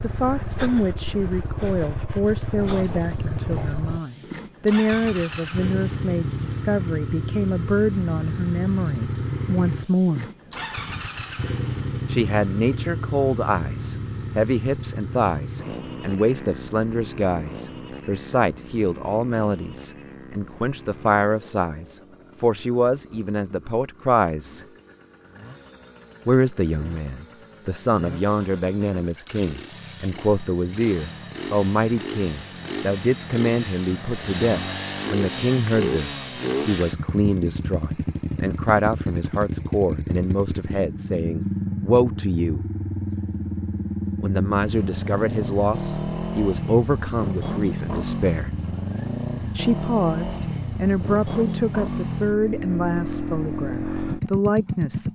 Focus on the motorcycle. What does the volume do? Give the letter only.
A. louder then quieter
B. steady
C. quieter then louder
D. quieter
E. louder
C.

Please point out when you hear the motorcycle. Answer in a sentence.
You can hear the motorcycle from 0.0 to 55.1 s.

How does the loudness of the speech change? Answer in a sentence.
The loudness of the speech stays about the same.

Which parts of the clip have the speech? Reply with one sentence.
You can hear the speech from 0.0 to 10.3 s, from 12.1 to 24.6 s, from 26.2 to 42.6 s, from 44.2 to 48.5 s and from 49.5 to 55.1 s.